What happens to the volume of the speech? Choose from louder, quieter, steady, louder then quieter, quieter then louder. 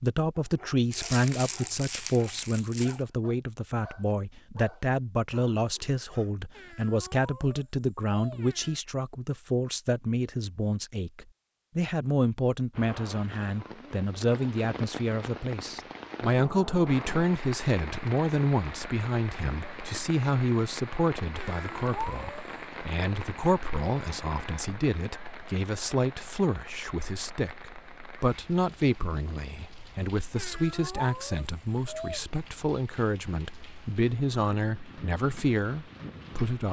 steady.